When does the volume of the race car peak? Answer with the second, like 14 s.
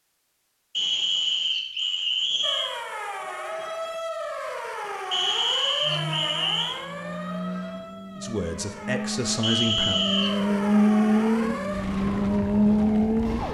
11 s.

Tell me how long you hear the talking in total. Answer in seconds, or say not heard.
2 s.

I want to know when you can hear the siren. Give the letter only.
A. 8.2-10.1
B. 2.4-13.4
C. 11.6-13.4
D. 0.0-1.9
B.